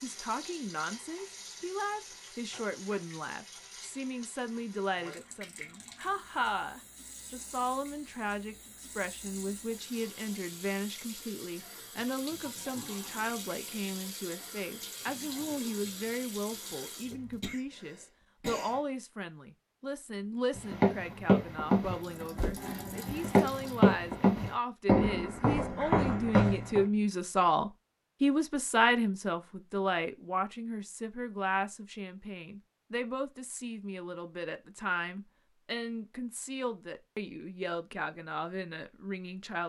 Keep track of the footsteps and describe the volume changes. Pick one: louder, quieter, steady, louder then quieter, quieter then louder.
quieter then louder.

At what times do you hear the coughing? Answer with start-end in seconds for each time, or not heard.
17.4-18.8.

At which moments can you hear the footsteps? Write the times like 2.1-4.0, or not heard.
20.6-26.9.